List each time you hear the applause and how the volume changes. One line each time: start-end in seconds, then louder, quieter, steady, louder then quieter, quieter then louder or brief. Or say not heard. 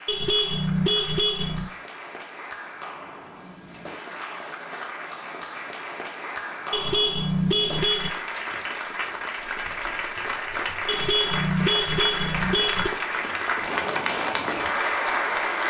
0.0-15.6 louder.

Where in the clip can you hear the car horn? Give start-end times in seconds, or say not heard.
0.1-1.7, 6.7-8.1, 10.8-12.9.